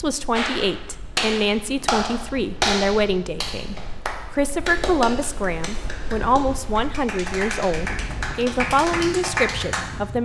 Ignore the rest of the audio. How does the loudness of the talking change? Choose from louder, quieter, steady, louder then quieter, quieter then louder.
steady.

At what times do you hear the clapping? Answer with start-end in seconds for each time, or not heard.
0.3-9.8.